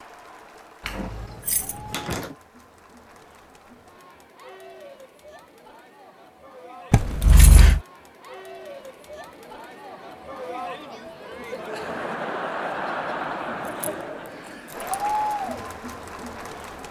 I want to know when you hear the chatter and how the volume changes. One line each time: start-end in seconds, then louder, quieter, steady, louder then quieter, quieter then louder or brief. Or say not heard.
0.0-16.8 louder.